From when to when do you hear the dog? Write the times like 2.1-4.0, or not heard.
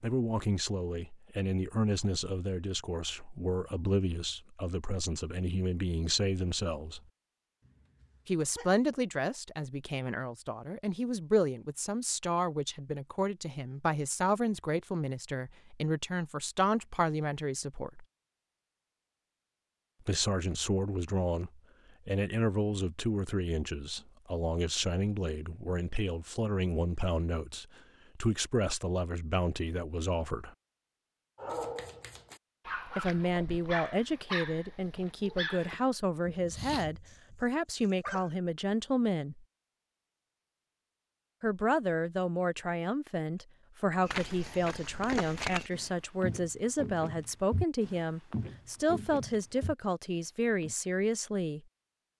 31.4-38.4.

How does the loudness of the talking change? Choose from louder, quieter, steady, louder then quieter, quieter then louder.
steady.